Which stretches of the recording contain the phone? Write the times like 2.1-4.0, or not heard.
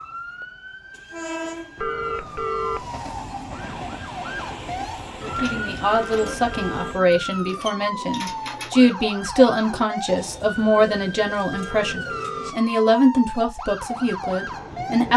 1.8-2.9, 5.9-7.0, 11.5-12.7.